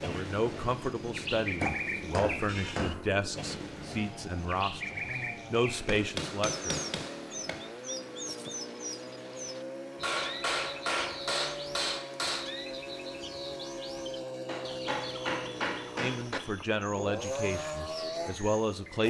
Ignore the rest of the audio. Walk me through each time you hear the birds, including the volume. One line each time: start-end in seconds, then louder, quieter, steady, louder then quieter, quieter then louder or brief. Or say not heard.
0.0-19.0 quieter.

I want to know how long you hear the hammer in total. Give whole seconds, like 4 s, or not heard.
8 s.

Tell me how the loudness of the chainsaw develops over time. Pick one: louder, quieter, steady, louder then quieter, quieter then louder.
louder.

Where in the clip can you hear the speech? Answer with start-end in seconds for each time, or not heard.
0.0-6.8, 15.9-19.0.